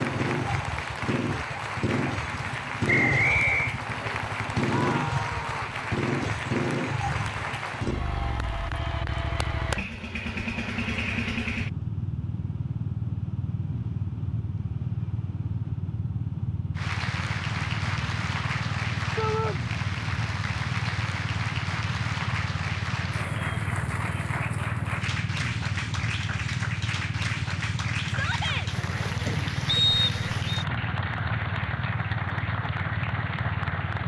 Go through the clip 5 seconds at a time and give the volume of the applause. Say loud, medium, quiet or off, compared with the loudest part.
loud, loud, off, loud, loud, loud, loud.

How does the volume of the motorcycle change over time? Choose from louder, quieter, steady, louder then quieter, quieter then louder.
steady.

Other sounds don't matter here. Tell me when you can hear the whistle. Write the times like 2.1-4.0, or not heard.
2.9-3.8, 29.6-30.6.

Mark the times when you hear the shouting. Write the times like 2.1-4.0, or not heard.
4.6-5.8, 19.1-19.6, 28.1-28.7.